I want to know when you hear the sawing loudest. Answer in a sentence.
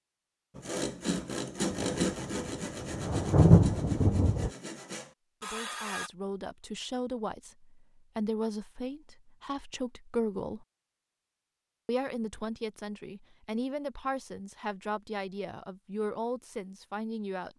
The volume of the sawing peaks at 2 seconds.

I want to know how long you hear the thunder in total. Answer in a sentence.
The thunder can be heard for 3 seconds in total.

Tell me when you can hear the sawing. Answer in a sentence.
You can hear the sawing from 0.6 to 6.1 s.